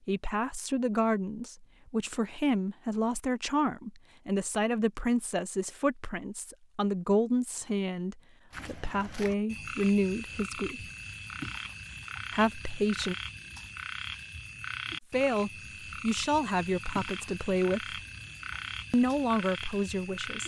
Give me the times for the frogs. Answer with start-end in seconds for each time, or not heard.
8.5-20.4.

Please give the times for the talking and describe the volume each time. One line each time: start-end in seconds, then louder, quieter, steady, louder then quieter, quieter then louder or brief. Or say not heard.
0.1-10.8 steady
12.3-13.2 brief
15.1-18.0 brief
18.9-20.4 brief.